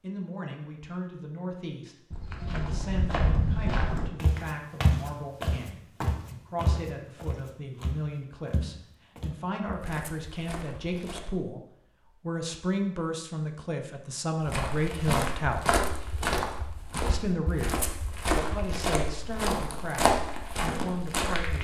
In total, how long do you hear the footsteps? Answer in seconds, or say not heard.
16 s.